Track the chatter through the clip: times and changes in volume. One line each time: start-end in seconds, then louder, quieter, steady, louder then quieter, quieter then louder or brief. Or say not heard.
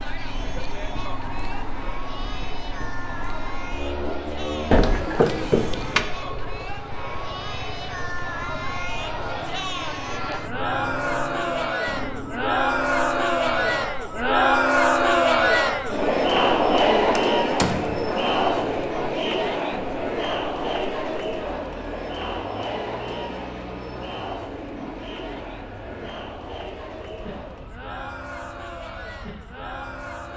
0.0-30.3 louder then quieter.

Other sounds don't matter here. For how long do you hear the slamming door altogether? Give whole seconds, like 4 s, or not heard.
2 s.